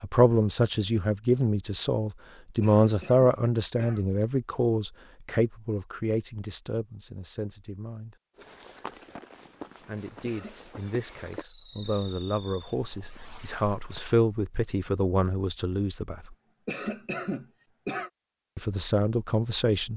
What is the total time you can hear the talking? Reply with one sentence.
You can hear the talking for 16 seconds altogether.